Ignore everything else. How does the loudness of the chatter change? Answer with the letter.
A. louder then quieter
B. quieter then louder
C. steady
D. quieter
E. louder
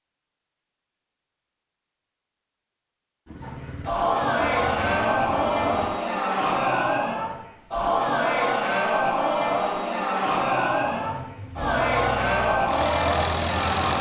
C.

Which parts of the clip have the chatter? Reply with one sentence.
You can hear the chatter from 3.4 to 13.9 s.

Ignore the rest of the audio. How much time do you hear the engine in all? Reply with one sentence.
You can hear the engine for 6 seconds altogether.